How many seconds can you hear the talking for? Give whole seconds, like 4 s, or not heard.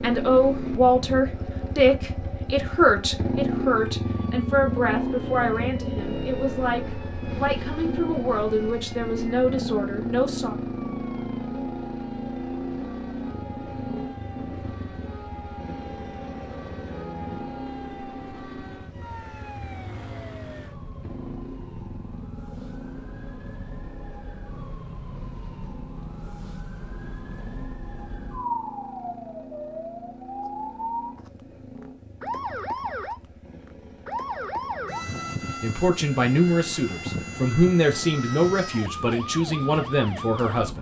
16 s.